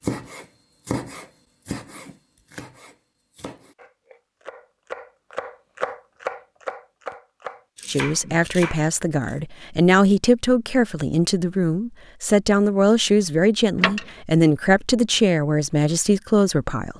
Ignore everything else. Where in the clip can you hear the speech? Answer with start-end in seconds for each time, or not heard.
7.8-16.9.